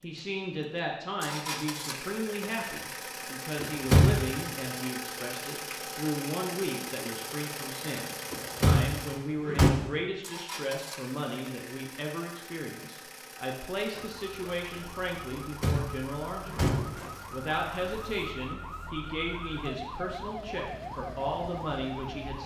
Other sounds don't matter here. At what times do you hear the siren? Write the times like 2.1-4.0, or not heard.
13.9-22.4.